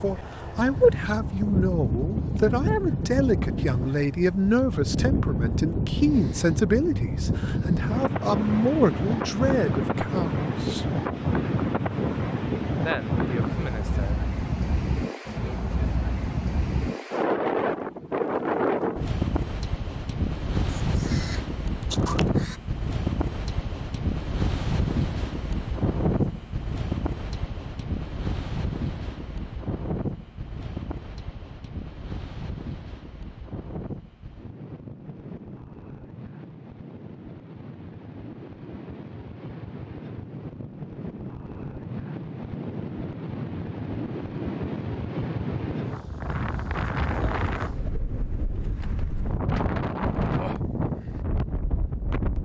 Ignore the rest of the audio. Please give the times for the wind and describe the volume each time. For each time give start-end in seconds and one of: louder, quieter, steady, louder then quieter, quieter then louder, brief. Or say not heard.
0.0-52.3 quieter then louder.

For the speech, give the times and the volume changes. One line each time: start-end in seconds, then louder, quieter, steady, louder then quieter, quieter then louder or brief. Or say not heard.
0.0-10.9 steady
12.8-14.2 brief.